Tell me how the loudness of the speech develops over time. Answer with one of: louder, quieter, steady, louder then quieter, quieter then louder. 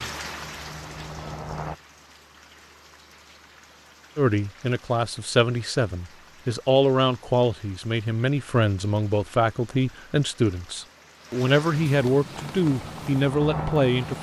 steady.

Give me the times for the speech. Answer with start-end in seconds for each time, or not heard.
4.2-14.1.